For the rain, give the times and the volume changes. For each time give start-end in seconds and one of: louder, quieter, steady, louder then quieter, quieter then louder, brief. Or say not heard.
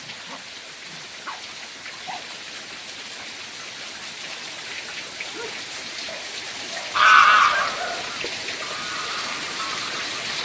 0.0-10.4 louder.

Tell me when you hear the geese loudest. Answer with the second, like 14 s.
7 s.